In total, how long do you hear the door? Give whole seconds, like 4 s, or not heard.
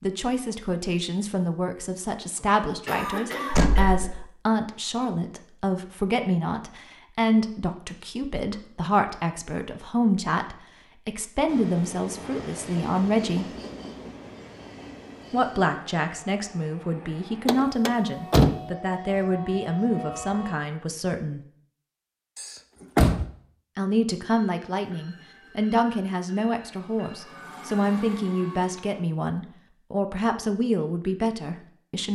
3 s.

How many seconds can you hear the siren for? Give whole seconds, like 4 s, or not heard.
not heard.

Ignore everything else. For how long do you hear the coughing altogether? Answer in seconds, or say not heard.
2 s.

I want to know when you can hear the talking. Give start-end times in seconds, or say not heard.
0.0-13.6, 15.3-21.4, 23.8-32.1.